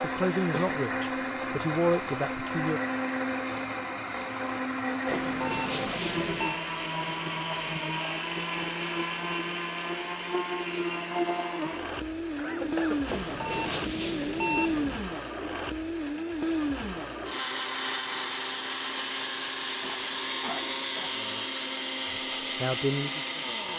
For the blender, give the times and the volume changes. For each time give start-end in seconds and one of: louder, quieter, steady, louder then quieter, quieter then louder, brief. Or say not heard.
0.0-23.7 steady.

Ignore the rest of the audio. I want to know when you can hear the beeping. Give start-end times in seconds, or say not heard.
5.0-6.6, 13.1-14.9.